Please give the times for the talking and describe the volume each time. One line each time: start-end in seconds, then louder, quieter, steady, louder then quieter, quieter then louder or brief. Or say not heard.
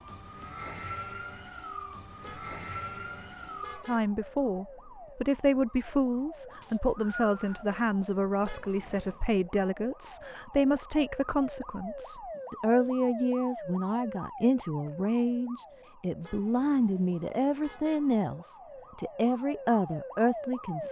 3.9-20.8 steady.